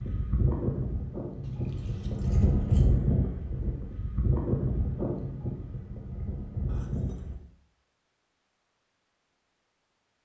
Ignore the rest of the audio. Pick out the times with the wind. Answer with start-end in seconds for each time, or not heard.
0.0-7.4.